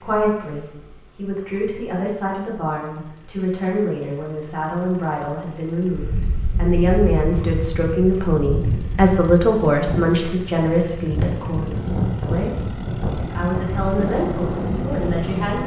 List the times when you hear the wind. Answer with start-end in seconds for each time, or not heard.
5.9-15.6.